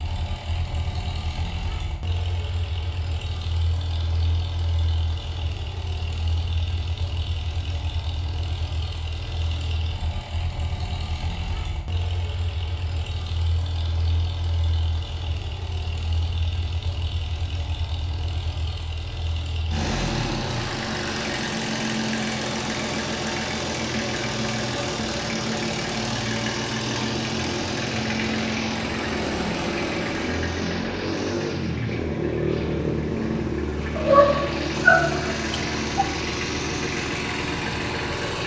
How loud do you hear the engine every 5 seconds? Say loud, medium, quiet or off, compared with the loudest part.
medium, medium, medium, medium, loud, loud, loud, loud.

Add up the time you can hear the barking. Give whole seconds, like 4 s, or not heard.
2 s.